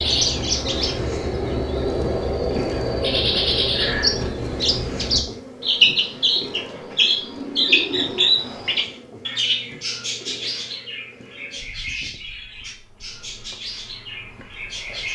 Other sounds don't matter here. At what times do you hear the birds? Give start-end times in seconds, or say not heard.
0.0-15.1.